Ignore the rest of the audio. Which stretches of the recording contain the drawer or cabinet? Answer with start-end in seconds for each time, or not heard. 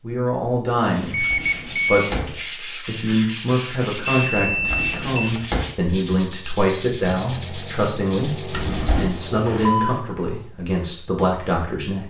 1.0-2.4, 4.3-5.7, 8.5-9.1.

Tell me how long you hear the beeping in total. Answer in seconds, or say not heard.
3 s.